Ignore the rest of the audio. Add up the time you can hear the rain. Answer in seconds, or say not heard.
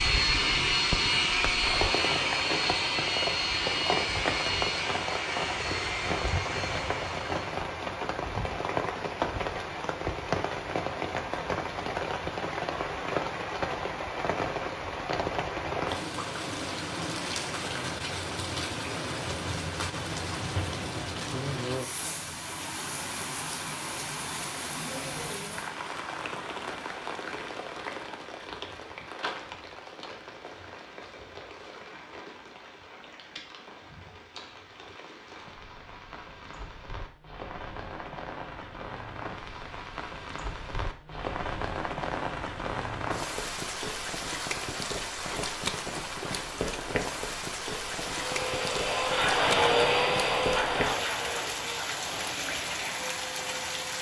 54 s.